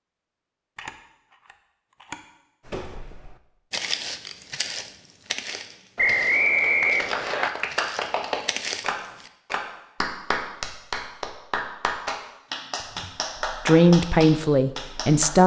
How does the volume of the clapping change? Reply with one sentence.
The loudness of the clapping stays about the same.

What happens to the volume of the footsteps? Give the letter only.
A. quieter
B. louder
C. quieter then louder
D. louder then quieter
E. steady
C.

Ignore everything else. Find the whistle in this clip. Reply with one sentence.
The whistle can be heard from 6.0 to 7.5 s.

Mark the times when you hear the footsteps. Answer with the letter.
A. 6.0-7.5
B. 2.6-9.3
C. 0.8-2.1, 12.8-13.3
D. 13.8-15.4
B.